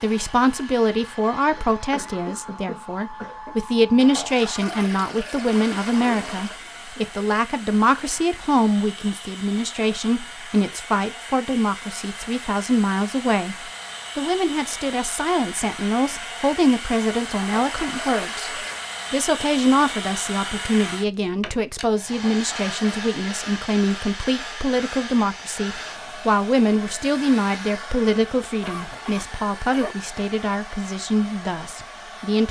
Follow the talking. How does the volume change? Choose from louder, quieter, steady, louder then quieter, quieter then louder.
steady.